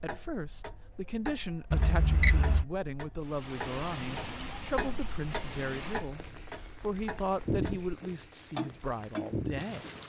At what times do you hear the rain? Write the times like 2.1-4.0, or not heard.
3.2-10.0.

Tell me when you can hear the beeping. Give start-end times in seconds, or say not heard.
1.7-2.6, 5.3-6.0.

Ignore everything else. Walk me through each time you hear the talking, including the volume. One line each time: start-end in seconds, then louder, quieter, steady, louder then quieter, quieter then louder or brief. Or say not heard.
0.0-9.8 steady.